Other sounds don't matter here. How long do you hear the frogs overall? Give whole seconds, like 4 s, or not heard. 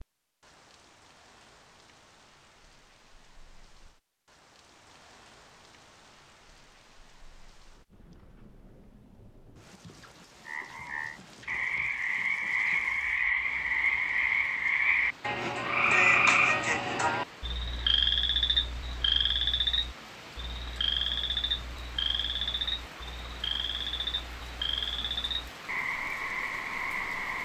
17 s.